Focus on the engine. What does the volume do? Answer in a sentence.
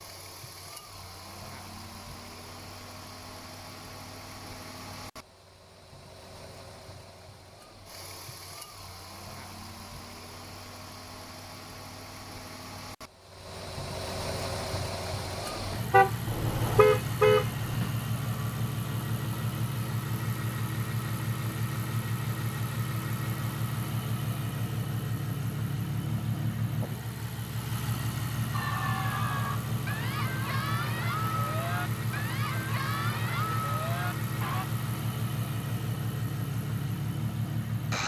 The loudness of the engine goes up.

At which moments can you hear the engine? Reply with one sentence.
The engine can be heard from 0.0 to 38.0 s.